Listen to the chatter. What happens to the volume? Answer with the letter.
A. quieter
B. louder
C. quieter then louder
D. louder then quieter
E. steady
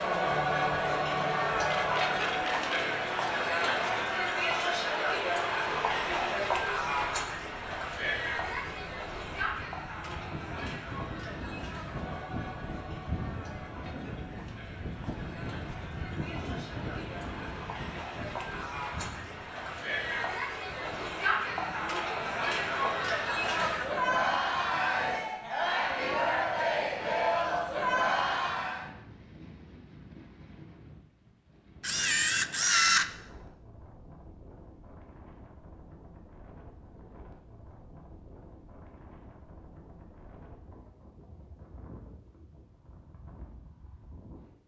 C.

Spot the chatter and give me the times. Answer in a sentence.
You can hear the chatter from 0.0 to 28.9 s.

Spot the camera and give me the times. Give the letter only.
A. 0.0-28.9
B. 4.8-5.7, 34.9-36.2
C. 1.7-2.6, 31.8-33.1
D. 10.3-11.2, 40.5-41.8
C.